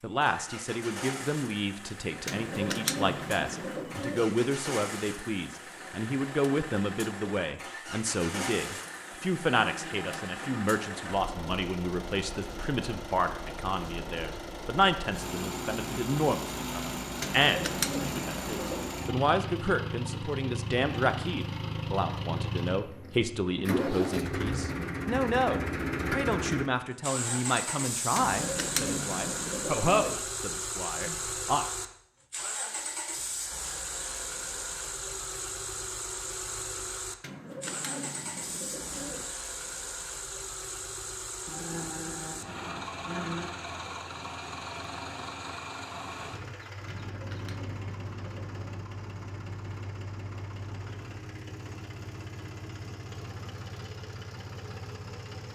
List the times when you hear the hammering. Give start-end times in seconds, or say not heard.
not heard.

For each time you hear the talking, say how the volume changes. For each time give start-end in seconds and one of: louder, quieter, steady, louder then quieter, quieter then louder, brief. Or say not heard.
0.0-31.6 steady.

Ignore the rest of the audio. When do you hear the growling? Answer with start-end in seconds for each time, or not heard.
9.6-10.8, 41.5-43.5.